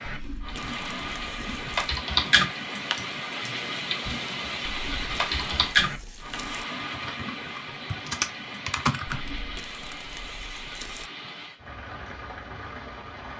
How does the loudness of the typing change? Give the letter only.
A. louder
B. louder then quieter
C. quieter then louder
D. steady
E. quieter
C.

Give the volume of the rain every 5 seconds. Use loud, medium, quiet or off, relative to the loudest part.
loud, loud, medium.